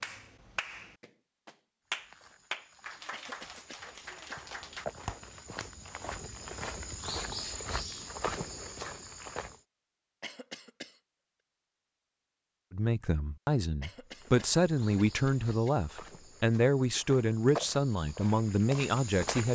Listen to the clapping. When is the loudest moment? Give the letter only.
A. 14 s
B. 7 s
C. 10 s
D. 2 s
D.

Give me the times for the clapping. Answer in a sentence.
The clapping can be heard from 0.0 to 5.7 s.